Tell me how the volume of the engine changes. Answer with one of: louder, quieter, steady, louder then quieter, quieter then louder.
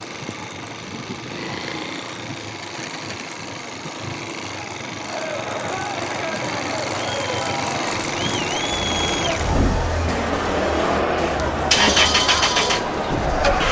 louder.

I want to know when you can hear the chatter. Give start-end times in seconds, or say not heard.
5.0-13.6.